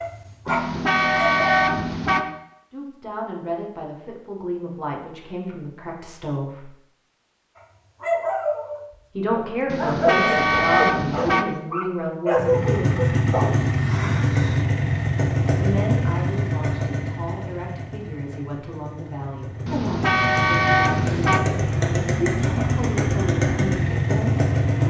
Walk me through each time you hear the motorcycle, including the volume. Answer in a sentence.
The motorcycle can be heard from 12.3 to 24.8 s, getting quieter then louder.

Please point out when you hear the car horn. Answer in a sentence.
The car horn can be heard from 0.5 to 2.2 s, from 9.7 to 11.4 s and from 19.6 to 21.4 s.